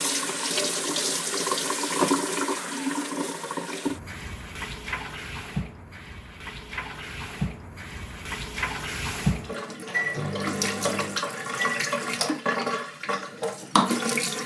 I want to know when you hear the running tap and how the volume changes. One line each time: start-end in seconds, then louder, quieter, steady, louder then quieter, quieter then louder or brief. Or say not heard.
0.0-14.4 quieter then louder.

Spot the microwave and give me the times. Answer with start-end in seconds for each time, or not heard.
9.8-11.8.